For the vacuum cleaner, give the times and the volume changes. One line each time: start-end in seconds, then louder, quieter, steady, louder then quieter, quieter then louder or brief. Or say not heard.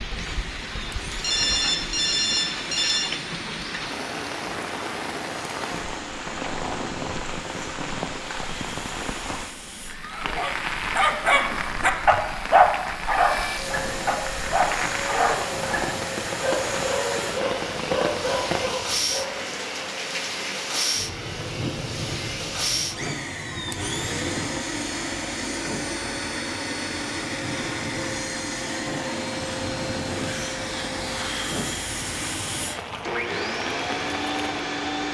0.0-35.0 louder.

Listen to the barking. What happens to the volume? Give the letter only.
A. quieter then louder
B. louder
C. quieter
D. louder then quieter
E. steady
C.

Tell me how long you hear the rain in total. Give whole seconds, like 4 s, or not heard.
35 s.